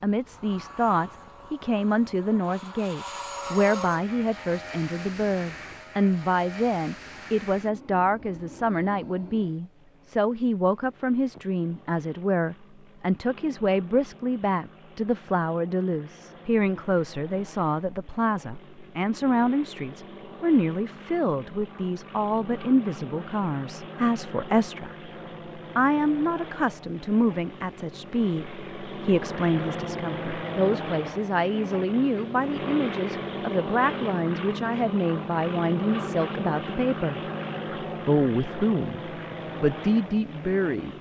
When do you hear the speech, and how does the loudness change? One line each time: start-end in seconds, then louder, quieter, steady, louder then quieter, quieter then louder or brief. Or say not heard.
0.0-37.2 steady
38.0-40.9 brief.